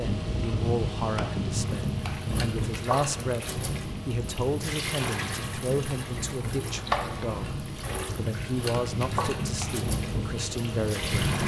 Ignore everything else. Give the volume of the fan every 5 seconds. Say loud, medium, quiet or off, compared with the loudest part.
loud, medium, loud.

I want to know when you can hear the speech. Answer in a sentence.
You can hear the speech from 0.0 to 3.5 s and from 4.0 to 11.2 s.